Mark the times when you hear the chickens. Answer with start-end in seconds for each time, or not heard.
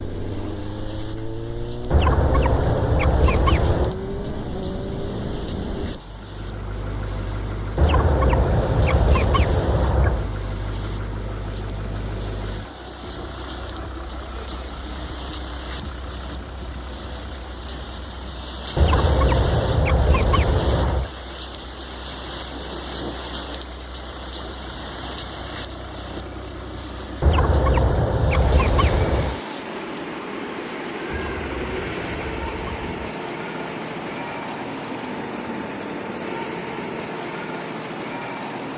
1.9-4.0, 7.8-10.3, 18.8-21.1, 27.2-29.4, 31.1-33.0.